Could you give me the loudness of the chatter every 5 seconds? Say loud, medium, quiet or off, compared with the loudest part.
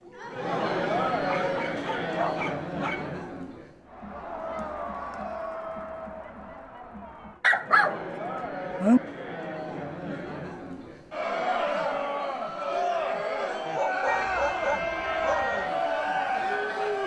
loud, medium, loud, loud.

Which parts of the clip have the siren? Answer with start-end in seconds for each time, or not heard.
14.1-17.0.